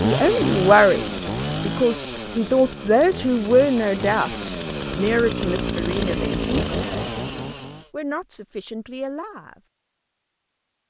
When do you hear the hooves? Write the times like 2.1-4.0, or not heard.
not heard.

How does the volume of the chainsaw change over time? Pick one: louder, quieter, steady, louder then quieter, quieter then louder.
quieter then louder.